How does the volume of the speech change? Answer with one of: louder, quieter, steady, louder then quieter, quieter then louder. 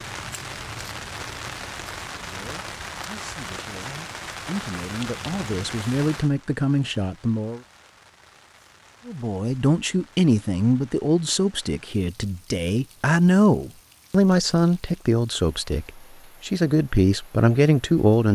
louder.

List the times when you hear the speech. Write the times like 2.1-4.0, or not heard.
2.1-7.6, 9.1-18.3.